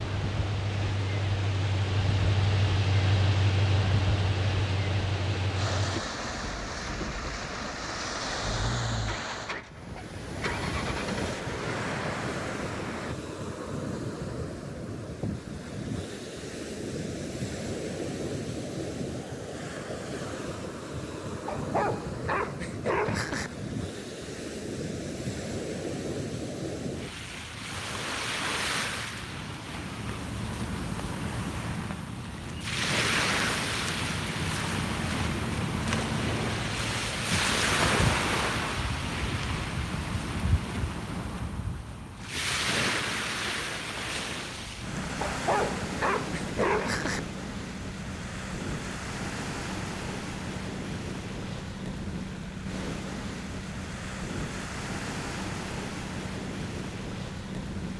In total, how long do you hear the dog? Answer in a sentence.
You can hear the dog for 4 seconds altogether.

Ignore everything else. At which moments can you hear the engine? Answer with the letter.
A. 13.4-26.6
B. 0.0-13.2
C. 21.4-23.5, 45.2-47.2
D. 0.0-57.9
B.